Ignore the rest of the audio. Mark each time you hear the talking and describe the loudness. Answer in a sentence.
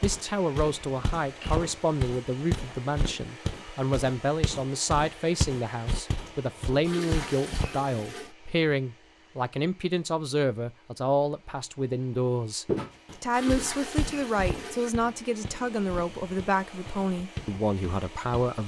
You can hear the talking from 0.0 to 18.6 s, at a steady volume.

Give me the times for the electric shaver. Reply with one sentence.
The electric shaver can't be heard in this clip.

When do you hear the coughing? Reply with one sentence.
You can't hear the coughing here.